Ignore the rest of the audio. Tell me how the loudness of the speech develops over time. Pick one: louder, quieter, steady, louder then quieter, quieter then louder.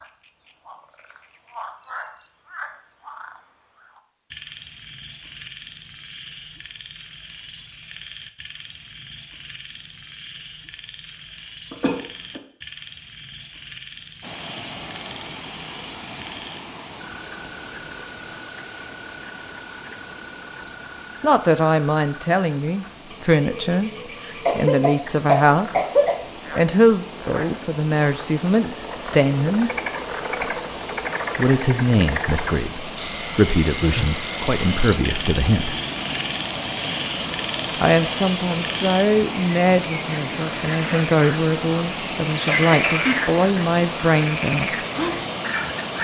steady.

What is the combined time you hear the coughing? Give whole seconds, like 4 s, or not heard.
3 s.